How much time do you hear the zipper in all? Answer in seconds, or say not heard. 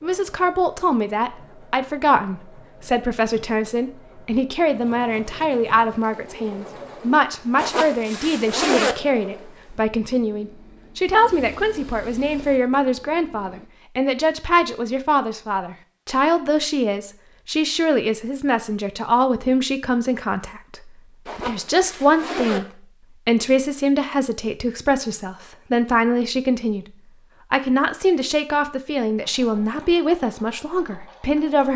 3 s.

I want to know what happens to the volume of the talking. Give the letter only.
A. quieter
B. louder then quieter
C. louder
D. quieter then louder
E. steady
E.